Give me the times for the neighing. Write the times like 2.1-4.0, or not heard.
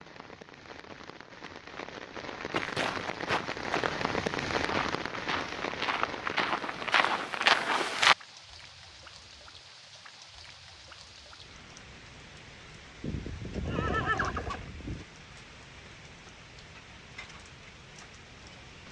13.0-15.1.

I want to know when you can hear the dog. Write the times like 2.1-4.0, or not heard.
not heard.